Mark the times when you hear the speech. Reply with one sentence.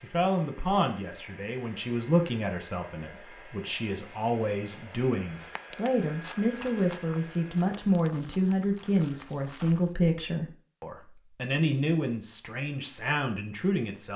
The speech can be heard from 0.0 to 14.1 s.